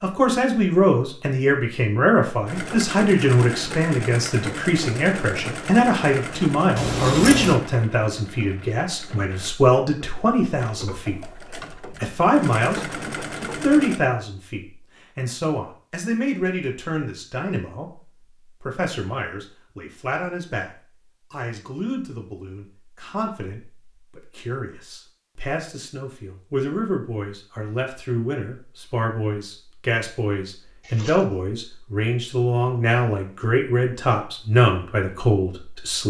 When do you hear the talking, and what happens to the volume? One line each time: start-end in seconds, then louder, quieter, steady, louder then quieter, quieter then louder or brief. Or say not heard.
0.0-11.4 steady
12.0-20.7 quieter
21.3-36.0 louder.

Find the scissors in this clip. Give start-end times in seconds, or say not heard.
6.8-7.6, 30.8-31.2.